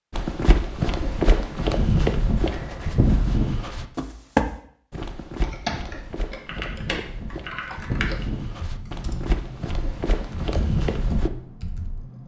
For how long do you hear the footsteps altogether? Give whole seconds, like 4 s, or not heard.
11 s.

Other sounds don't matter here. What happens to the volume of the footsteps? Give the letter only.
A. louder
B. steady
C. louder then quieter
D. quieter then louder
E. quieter
D.